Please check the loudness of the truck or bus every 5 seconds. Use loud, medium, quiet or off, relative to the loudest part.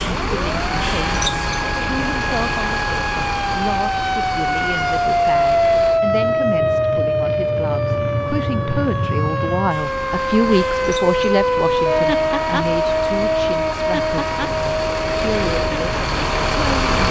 loud, medium, medium, loud.